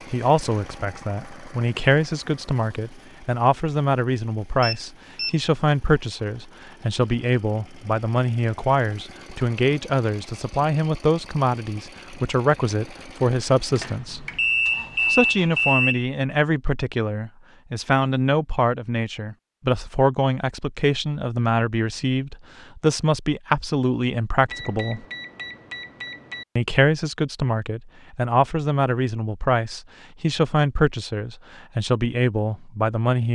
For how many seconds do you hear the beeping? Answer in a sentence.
The beeping can be heard for 5 seconds in total.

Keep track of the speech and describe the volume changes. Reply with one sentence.
The loudness of the speech stays about the same.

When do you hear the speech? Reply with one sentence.
The speech can be heard from 0.1 to 14.2 s, from 15.1 to 25.1 s and from 26.6 to 33.2 s.